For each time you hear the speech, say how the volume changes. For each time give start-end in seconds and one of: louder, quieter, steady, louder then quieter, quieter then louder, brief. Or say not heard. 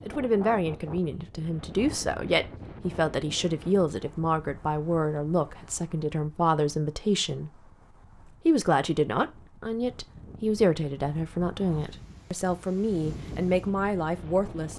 0.0-14.7 steady.